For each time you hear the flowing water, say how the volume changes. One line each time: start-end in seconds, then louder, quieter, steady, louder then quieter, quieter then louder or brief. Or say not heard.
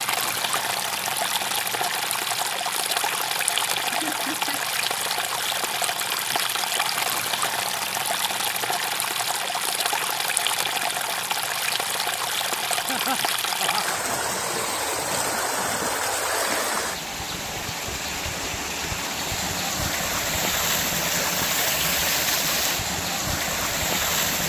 0.0-24.4 steady.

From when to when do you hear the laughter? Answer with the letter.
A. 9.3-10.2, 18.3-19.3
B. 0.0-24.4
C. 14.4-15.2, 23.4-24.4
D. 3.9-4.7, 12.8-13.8
D.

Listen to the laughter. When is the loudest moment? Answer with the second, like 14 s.
13 s.